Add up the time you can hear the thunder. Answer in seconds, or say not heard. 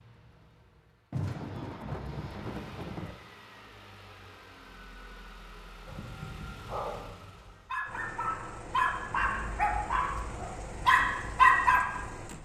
2 s.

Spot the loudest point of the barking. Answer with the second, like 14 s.
12 s.